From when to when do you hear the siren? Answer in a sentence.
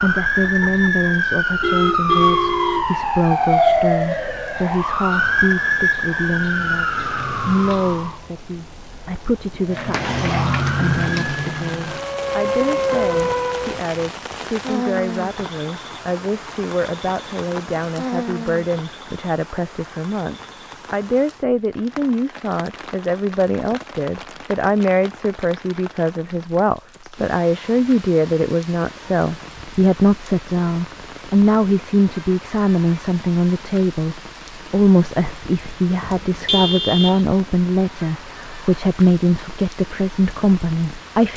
The siren can be heard from 0.0 to 8.2 s and from 9.7 to 13.8 s.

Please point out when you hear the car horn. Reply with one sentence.
You can hear the car horn from 1.6 to 3.0 s and from 36.0 to 37.2 s.